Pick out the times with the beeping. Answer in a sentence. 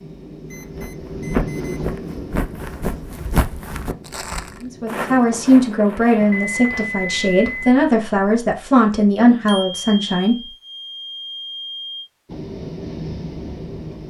You can hear the beeping from 0.5 to 1.9 s, from 6.3 to 7.8 s and from 9.4 to 12.1 s.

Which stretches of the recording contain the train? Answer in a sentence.
You can hear the train from 0.0 to 5.7 s and from 12.2 to 14.0 s.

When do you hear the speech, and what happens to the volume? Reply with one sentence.
The speech can be heard from 4.6 to 10.4 s, at a steady volume.